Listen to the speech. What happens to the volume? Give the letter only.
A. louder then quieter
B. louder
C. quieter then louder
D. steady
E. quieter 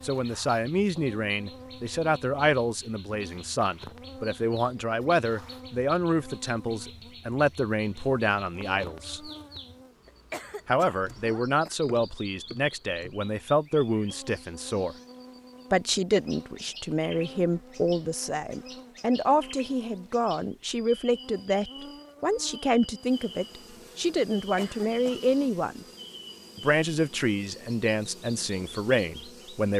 D.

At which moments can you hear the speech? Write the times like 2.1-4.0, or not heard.
0.0-9.3, 10.7-14.9, 15.7-25.9, 26.6-29.7.